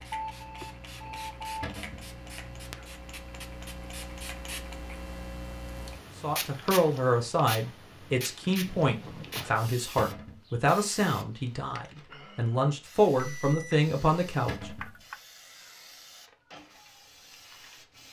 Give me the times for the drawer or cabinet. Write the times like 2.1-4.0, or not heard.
1.6-2.1, 9.9-10.4, 14.4-14.9.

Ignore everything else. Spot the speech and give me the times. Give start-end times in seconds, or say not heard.
6.2-14.7.